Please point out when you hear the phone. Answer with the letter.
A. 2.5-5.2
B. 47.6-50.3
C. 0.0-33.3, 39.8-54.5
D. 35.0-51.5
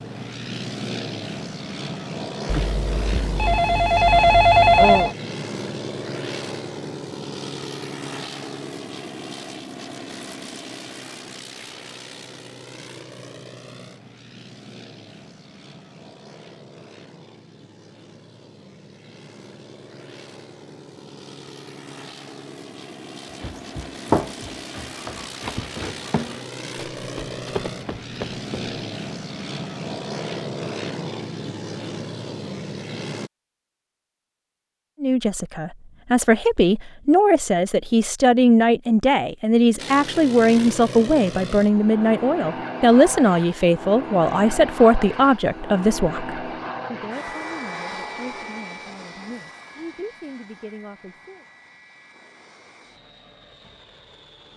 A.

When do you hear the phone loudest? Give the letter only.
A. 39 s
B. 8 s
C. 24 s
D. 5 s
D.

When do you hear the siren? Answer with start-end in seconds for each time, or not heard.
not heard.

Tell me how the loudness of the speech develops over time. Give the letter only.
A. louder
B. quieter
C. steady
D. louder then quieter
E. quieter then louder
B.